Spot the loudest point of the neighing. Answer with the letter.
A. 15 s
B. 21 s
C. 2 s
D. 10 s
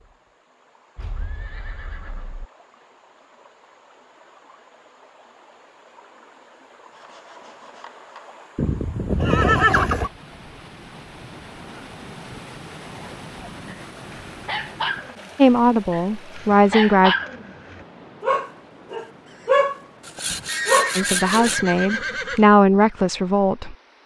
D.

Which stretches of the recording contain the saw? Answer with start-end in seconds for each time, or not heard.
6.9-8.4, 20.0-21.6.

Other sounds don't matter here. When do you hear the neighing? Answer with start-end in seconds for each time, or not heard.
0.9-2.5, 8.6-10.1, 20.2-22.4.